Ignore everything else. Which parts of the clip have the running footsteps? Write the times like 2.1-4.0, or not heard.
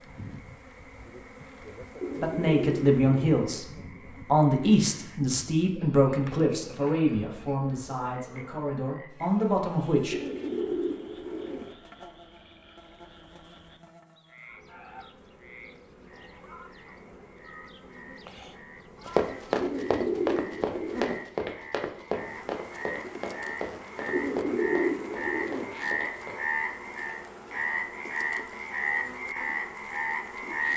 19.1-26.4.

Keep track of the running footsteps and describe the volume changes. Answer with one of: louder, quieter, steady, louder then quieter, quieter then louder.
quieter.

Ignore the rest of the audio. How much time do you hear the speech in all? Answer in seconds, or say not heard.
8 s.